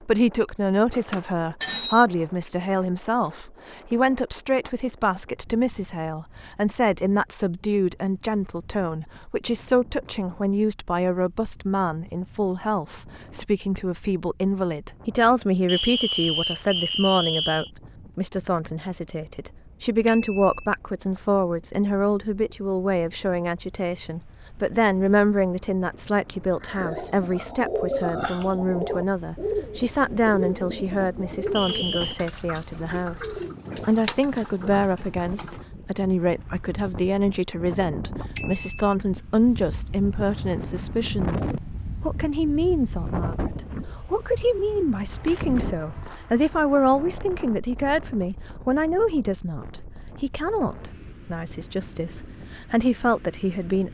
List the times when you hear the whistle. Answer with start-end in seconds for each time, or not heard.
15.7-17.7, 31.6-32.2.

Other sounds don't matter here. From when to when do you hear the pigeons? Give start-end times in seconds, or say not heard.
26.6-35.6.